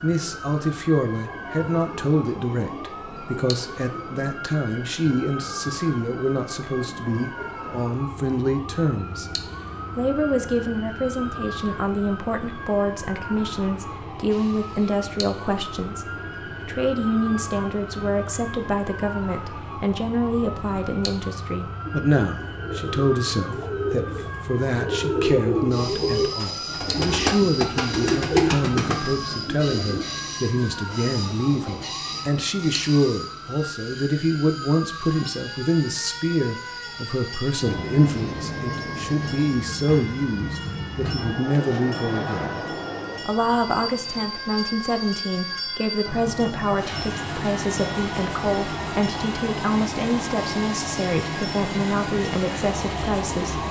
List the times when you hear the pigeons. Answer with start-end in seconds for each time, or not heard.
21.9-30.1.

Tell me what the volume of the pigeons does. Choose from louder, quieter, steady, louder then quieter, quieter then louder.
louder.